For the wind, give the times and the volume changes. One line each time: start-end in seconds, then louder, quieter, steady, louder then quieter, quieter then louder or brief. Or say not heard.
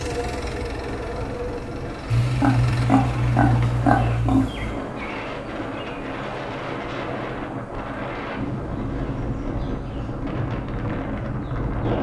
0.2-11.9 louder.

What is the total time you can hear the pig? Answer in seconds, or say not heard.
3 s.